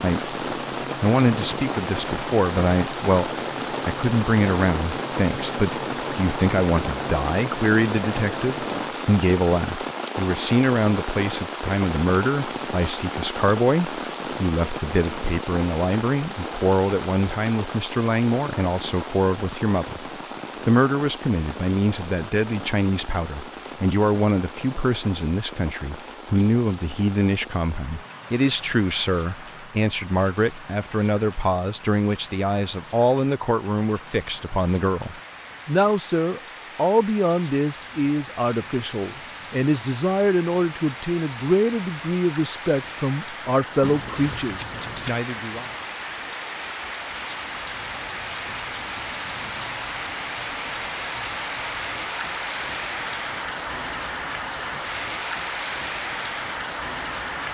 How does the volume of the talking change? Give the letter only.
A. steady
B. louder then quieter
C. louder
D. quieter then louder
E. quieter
A.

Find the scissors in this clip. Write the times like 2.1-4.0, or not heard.
26.4-27.1, 43.8-45.2.